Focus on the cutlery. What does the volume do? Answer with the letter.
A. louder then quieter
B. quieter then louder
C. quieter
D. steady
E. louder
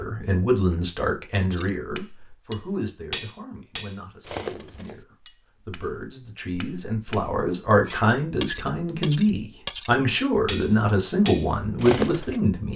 B.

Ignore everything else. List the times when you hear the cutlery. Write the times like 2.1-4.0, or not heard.
1.5-12.4.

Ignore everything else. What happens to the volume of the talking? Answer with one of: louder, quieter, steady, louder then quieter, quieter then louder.
quieter then louder.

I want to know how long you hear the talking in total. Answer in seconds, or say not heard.
13 s.